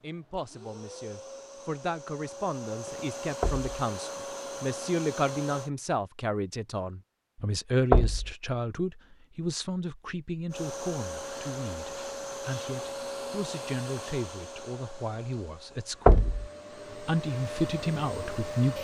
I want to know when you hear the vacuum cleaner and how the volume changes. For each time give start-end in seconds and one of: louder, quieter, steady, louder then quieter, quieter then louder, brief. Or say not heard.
0.0-5.7 louder
10.5-18.7 quieter then louder.